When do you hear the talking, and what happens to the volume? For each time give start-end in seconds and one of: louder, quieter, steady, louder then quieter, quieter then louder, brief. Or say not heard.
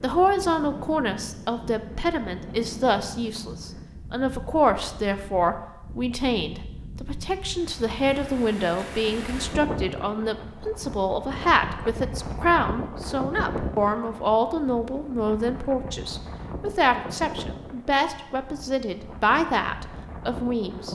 0.0-20.9 steady.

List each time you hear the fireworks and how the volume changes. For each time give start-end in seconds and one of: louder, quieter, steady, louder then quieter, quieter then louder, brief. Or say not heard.
not heard.